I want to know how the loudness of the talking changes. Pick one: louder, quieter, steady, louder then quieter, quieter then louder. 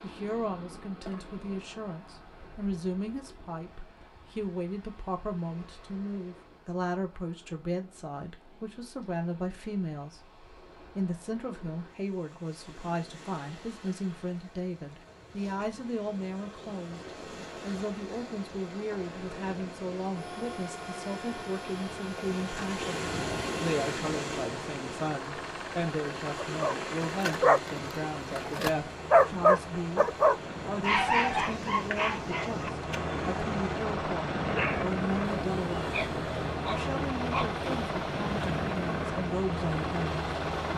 steady.